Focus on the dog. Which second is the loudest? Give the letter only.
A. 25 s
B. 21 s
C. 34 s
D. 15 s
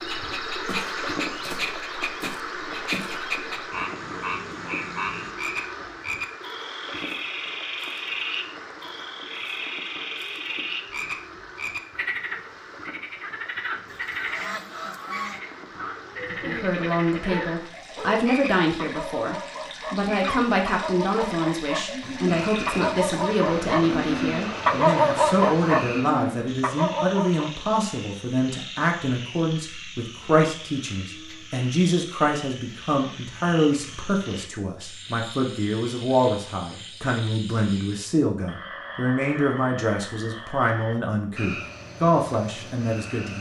A.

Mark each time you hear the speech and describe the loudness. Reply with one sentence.
You can hear the speech from 16.3 to 43.3 s, at a steady volume.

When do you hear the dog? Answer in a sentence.
You can hear the dog from 16.1 to 27.6 s.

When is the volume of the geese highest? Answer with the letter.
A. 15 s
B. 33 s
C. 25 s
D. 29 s
A.